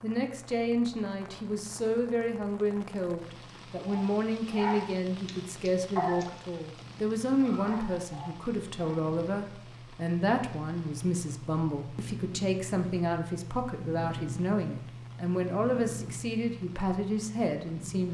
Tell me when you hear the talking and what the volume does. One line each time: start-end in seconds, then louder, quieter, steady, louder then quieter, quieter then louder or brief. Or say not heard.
0.0-18.1 steady.